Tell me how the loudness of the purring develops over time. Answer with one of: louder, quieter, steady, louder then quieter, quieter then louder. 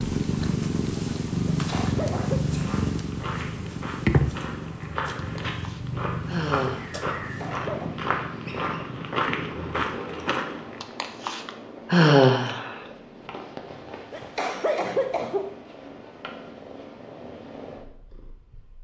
quieter.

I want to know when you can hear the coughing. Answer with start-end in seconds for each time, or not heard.
1.5-2.4, 7.2-8.0, 14.1-15.5.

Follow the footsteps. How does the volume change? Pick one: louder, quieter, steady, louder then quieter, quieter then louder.
louder.